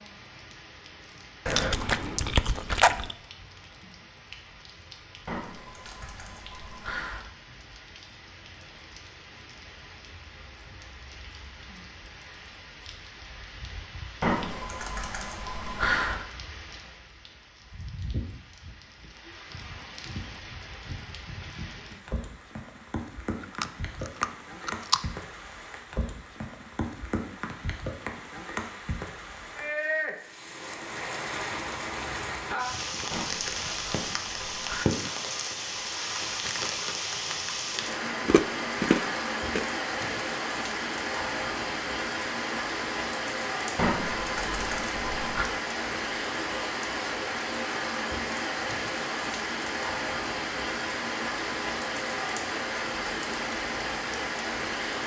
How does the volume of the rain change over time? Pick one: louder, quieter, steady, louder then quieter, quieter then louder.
louder.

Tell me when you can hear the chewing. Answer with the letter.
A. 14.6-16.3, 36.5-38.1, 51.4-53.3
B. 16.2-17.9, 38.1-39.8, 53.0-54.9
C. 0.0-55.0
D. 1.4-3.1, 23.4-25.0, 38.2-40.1
D.